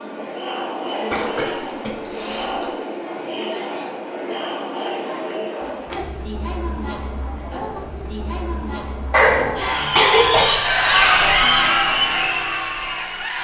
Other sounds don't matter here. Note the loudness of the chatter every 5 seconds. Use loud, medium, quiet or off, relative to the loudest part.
medium, medium, loud.